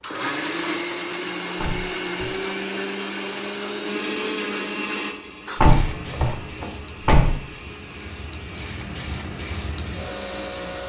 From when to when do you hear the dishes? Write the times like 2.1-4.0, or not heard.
not heard.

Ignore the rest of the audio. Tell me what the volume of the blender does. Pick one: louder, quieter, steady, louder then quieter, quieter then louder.
quieter.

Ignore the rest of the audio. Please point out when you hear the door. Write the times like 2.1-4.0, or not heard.
1.6-2.3, 5.5-7.3.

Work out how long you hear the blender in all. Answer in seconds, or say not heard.
11 s.